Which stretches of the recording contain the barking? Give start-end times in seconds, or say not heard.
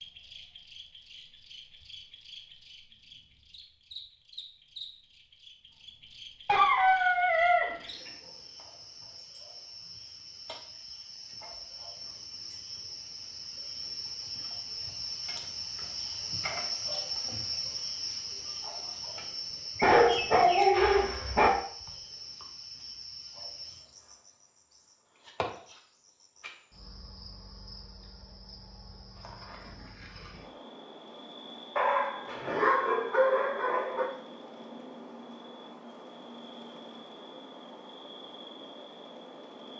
6.5-8.1, 19.8-21.5, 31.8-34.0.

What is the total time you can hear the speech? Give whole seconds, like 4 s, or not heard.
not heard.